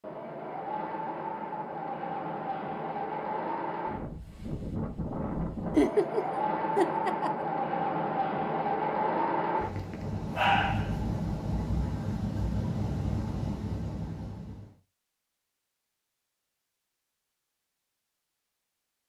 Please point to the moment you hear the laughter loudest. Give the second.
6 s.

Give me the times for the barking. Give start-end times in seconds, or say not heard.
9.7-11.1.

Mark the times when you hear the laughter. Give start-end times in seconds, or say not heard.
5.8-7.5.